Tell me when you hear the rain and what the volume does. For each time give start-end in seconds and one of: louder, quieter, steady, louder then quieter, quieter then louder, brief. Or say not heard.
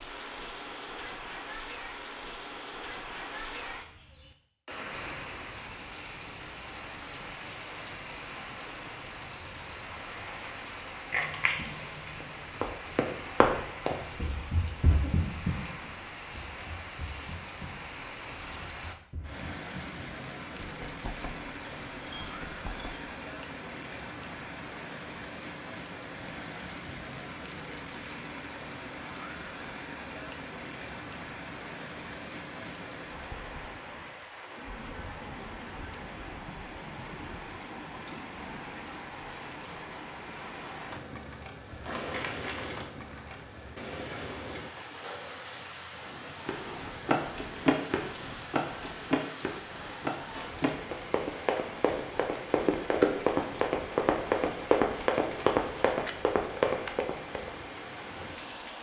0.0-58.7 steady.